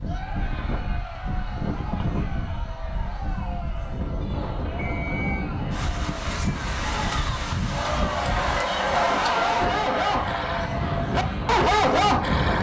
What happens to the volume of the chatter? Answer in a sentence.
The loudness of the chatter goes up.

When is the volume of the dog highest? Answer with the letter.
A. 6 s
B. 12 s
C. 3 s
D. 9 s
B.